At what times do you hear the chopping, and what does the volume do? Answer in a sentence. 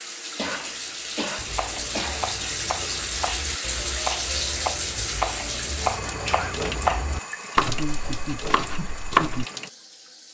You can hear the chopping from 1.4 to 9.4 s, getting louder then quieter.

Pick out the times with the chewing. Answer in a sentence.
The chewing can't be heard in this clip.